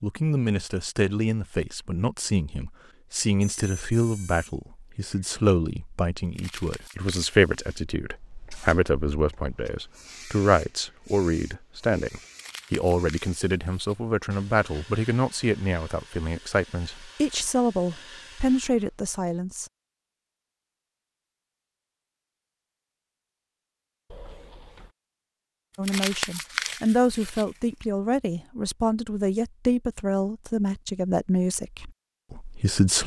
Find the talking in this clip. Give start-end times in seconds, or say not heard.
0.0-19.7, 25.8-33.0.